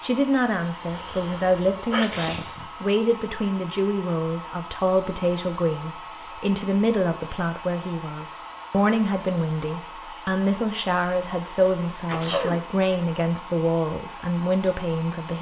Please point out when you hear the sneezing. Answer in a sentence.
The sneezing can be heard from 0.8 to 2.6 s and from 12.1 to 12.6 s.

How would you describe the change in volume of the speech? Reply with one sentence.
The volume of the speech stays about the same.